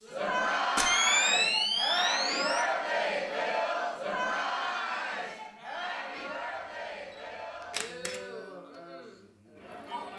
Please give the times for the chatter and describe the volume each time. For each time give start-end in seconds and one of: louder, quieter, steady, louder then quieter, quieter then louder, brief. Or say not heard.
0.1-10.1 quieter.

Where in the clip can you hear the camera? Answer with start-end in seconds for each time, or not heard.
0.8-2.6, 7.7-8.2.